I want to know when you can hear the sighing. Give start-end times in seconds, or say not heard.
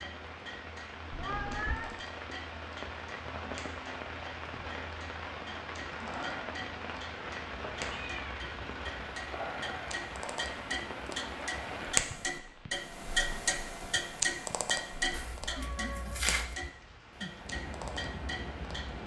not heard.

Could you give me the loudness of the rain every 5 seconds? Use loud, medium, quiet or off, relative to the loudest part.
loud, loud, loud, medium.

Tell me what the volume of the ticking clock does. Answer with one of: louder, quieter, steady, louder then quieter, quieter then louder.
louder then quieter.